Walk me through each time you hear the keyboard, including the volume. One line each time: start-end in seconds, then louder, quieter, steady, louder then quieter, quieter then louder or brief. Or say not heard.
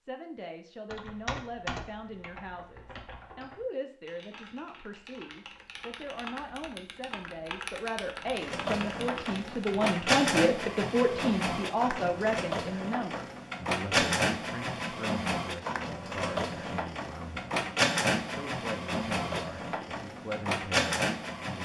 0.9-9.8 quieter then louder.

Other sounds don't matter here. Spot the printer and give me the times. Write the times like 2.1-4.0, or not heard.
8.3-21.6.